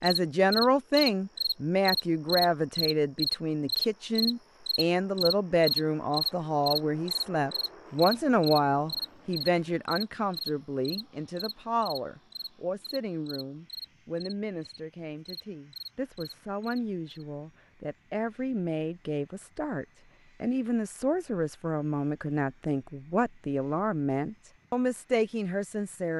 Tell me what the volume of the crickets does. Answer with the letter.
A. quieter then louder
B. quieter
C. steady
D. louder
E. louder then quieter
B.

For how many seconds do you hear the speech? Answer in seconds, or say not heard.
26 s.